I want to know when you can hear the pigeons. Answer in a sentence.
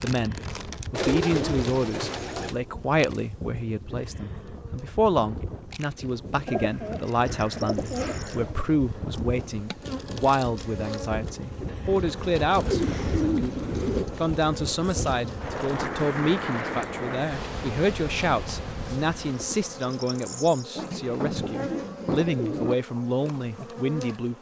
You can hear the pigeons from 0.9 to 2.5 s, from 6.5 to 8.7 s, from 12.5 to 14.1 s and from 20.8 to 22.8 s.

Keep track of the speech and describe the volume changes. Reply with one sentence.
The loudness of the speech stays about the same.